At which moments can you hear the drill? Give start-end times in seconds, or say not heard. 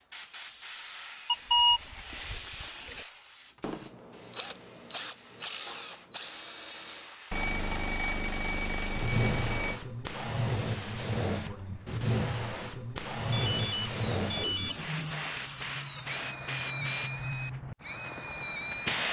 0.2-7.2, 13.2-19.0.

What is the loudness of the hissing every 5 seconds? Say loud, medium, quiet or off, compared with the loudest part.
quiet, loud, loud, loud.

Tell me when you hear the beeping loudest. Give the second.
2 s.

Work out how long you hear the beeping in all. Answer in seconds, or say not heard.
6 s.